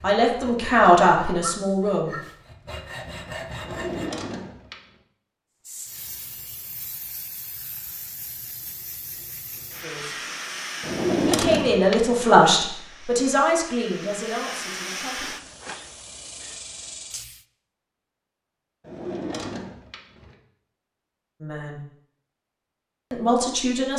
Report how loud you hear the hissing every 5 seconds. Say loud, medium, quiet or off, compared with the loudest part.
off, medium, loud, loud, off.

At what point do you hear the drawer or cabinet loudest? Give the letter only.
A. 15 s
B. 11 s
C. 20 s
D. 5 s
B.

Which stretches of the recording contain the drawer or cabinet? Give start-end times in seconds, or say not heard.
3.6-4.9, 10.8-12.2, 18.8-20.4.